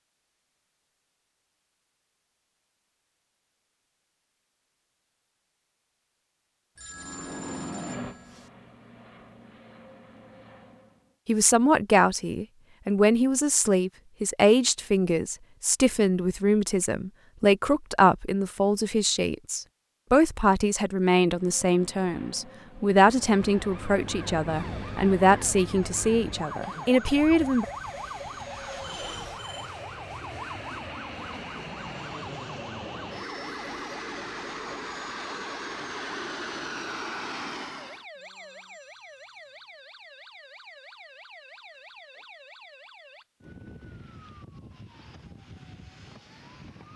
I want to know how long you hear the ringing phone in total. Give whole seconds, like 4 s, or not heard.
4 s.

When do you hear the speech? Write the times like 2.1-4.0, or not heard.
11.2-27.6.